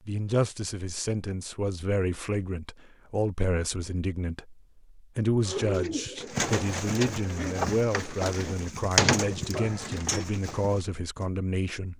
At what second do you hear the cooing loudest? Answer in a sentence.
The loudest moment of the cooing is at 9 seconds.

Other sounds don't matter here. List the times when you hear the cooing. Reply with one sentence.
You can hear the cooing from 5.5 to 11.2 s.